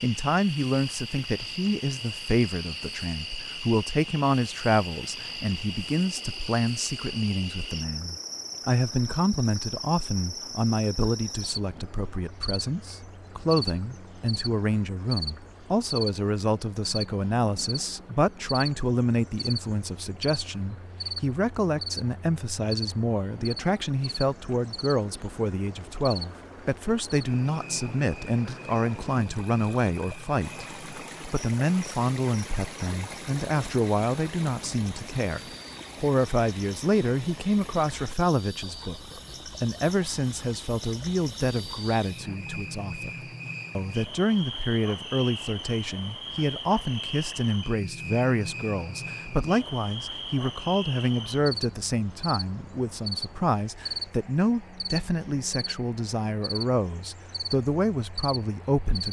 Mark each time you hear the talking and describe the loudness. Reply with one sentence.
You can hear the talking from 0.0 to 43.1 s, at a steady volume; and from 43.8 to 59.0 s, at a steady volume.